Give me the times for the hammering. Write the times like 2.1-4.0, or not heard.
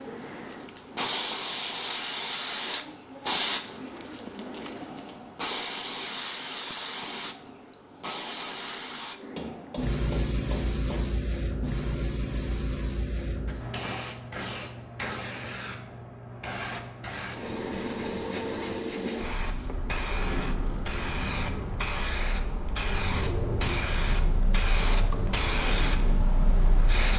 9.3-11.1.